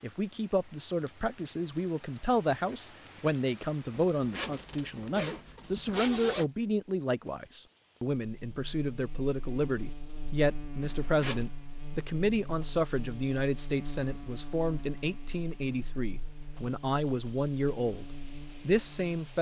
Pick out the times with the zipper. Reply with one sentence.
You can hear the zipper from 3.9 to 6.5 s and from 10.8 to 11.5 s.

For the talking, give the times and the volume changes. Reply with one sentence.
You can hear the talking from 0.0 to 18.1 s, at a steady volume; and briefly from 18.6 to 19.3 s.